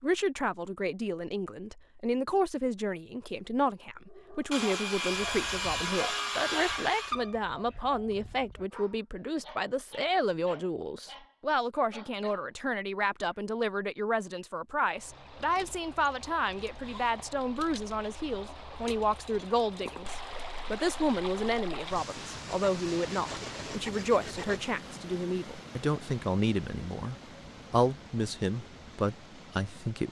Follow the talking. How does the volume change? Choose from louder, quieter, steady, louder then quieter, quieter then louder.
steady.